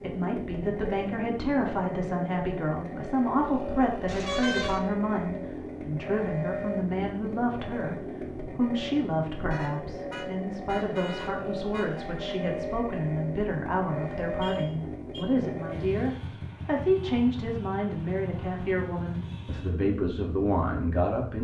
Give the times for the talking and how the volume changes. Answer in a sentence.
The talking can be heard from 0.0 to 21.4 s, at a steady volume.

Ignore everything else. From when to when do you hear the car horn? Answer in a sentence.
You can hear the car horn from 4.0 to 4.8 s, from 9.5 to 12.1 s and from 14.4 to 15.3 s.